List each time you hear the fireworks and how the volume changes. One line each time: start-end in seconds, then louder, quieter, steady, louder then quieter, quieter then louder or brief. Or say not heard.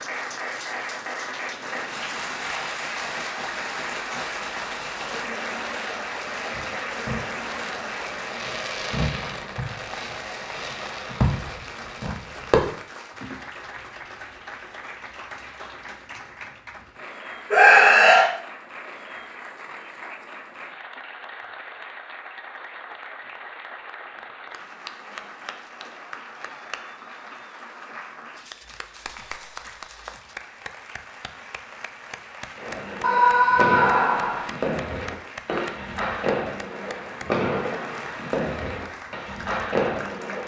1.4-12.8 louder
32.5-40.4 steady.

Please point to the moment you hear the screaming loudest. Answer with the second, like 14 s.
18 s.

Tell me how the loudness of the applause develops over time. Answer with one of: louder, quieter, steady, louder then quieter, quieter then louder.
quieter.